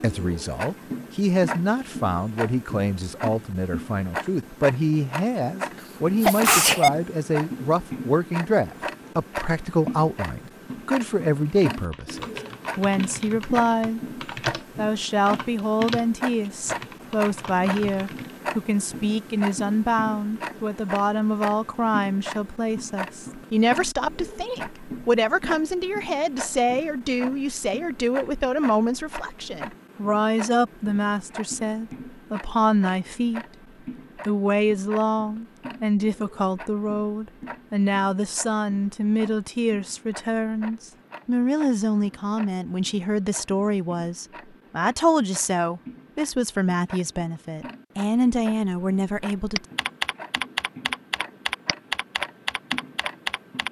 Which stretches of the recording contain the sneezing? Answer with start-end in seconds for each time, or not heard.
5.8-6.9.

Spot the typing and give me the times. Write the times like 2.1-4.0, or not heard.
11.7-18.4, 49.2-53.6.